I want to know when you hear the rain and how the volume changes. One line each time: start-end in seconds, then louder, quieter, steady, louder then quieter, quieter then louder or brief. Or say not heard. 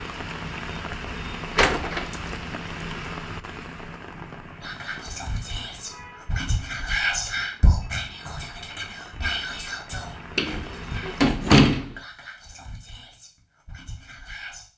0.0-11.4 quieter then louder.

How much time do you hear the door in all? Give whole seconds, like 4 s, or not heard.
2 s.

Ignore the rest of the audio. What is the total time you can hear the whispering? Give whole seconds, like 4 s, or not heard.
10 s.